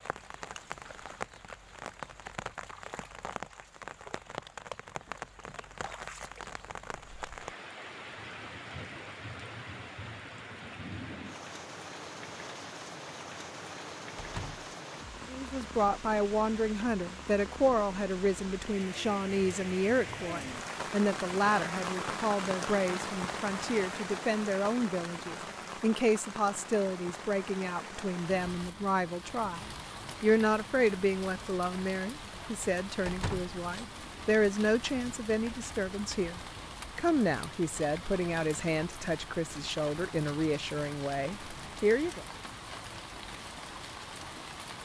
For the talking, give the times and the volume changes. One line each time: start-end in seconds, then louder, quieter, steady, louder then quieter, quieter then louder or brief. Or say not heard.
15.3-42.2 steady.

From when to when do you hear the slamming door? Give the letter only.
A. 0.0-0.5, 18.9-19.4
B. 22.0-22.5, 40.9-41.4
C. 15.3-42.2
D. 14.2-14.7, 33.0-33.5
D.